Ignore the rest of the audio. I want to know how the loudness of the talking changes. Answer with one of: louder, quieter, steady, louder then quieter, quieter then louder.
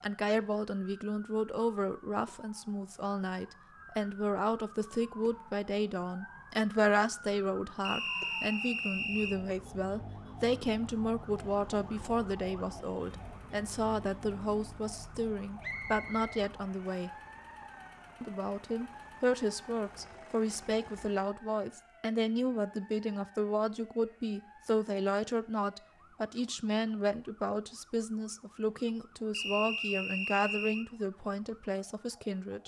steady.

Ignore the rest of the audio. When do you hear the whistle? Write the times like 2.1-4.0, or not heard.
7.8-9.3, 15.6-17.1, 29.3-30.9.